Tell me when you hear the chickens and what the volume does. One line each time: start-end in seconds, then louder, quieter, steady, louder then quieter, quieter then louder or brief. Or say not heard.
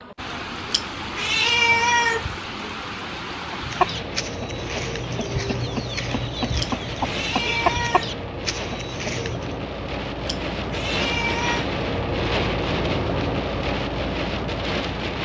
3.5-9.6 louder then quieter.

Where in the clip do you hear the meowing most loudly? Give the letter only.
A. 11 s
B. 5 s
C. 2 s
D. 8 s
C.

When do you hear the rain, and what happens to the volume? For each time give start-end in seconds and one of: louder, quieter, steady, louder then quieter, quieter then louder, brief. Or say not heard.
0.0-15.1 louder.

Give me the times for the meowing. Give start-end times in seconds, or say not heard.
0.7-2.4, 6.5-8.2, 10.2-11.7.